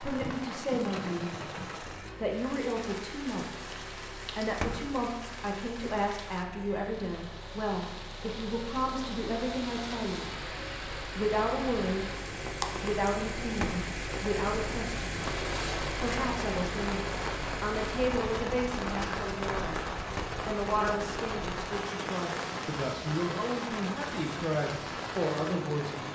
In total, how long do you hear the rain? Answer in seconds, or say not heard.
26 s.